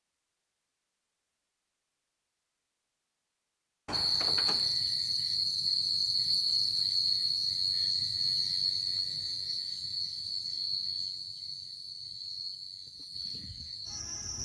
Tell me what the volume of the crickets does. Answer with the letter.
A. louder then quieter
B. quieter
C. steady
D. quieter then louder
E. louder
B.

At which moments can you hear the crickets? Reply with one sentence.
The crickets can be heard from 3.9 to 14.4 s.